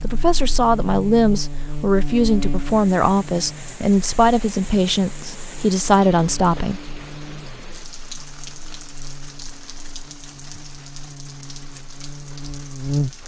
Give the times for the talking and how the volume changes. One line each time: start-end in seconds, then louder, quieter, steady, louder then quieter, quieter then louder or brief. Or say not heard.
0.0-6.8 steady.